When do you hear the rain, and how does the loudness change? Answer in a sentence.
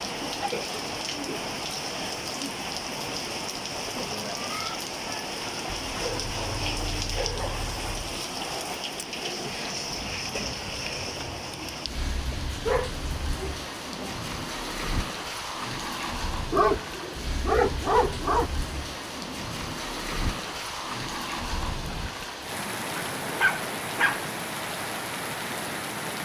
You can hear the rain from 0.0 to 26.2 s, at a steady volume.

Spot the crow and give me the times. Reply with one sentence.
The crow can't be heard in this clip.